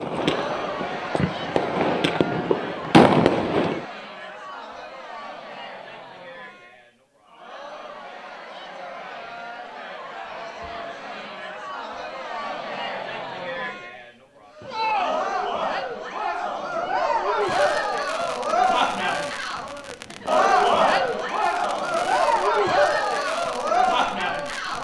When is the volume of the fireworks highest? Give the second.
3 s.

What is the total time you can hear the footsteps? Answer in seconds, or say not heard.
not heard.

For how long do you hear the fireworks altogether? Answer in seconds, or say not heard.
11 s.